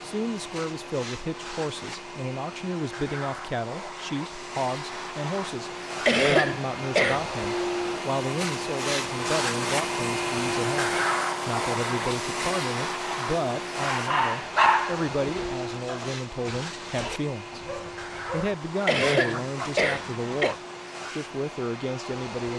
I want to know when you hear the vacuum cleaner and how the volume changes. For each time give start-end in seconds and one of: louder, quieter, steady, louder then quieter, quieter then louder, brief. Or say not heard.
0.0-22.5 louder then quieter.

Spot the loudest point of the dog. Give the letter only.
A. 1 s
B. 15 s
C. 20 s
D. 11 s
B.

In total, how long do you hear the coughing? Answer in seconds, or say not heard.
3 s.